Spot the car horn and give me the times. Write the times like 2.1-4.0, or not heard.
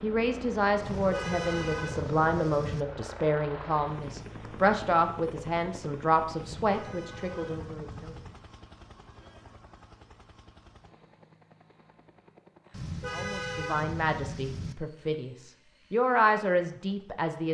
0.8-2.9, 6.4-8.4, 12.7-14.8.